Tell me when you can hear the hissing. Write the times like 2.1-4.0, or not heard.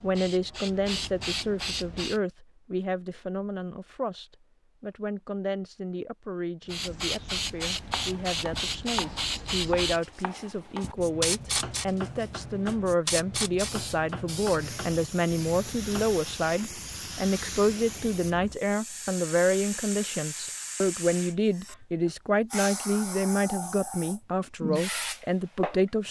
0.0-2.2, 6.7-26.0.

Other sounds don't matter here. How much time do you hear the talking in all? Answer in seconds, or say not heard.
26 s.